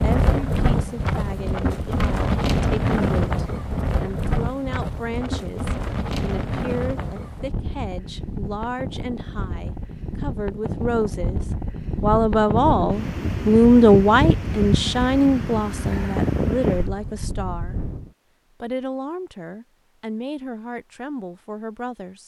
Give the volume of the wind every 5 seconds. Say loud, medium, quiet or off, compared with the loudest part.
loud, medium, loud, loud, off.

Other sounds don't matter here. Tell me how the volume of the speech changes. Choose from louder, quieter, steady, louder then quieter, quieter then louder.
louder then quieter.